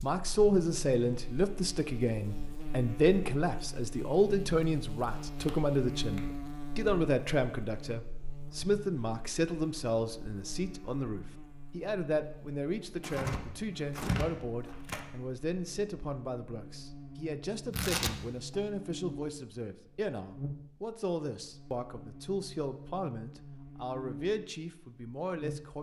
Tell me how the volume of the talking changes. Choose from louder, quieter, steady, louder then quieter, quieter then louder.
quieter.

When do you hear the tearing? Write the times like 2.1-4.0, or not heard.
5.3-6.2, 13.0-15.0, 17.7-18.6.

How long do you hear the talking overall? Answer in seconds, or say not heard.
26 s.